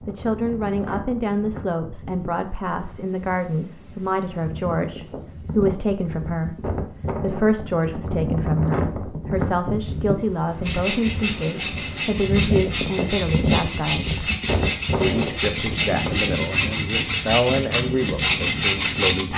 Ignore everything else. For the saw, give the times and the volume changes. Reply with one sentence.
You can hear the saw from 10.6 to 19.3 s, getting louder.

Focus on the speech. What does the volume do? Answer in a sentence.
The volume of the speech stays about the same.